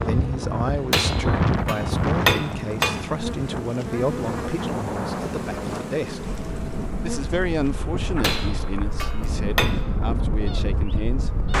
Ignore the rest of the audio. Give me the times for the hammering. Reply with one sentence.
You can hear the hammering from 0.9 to 3.1 s and from 8.2 to 9.9 s.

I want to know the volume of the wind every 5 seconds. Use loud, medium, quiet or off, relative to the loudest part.
loud, medium, loud.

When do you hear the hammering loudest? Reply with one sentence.
The volume of the hammering peaks at 2 seconds.